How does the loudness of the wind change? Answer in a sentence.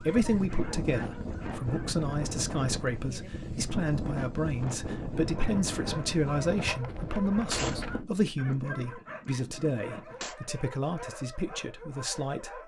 The loudness of the wind stays about the same.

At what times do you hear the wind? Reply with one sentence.
The wind can be heard from 0.0 to 8.1 s.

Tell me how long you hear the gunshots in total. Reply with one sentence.
The gunshots can be heard for 3 seconds in total.